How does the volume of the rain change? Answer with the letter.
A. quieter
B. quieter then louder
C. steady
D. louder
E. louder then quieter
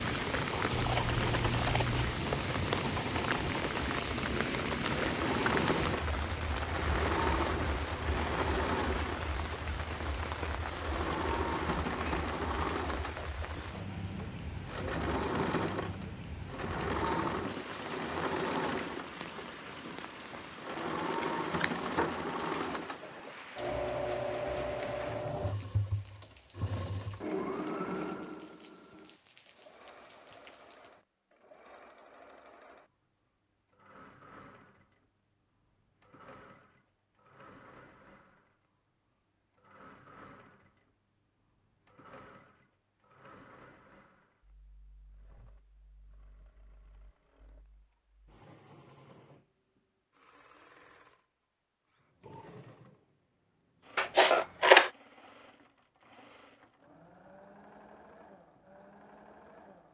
A.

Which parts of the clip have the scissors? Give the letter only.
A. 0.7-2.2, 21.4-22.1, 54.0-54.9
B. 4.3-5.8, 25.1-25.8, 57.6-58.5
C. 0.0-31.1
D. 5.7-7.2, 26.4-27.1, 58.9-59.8
A.